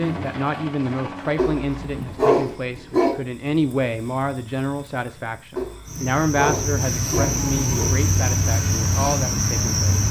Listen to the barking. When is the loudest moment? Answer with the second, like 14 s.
2 s.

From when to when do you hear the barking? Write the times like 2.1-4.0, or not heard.
1.4-3.1, 5.5-8.0.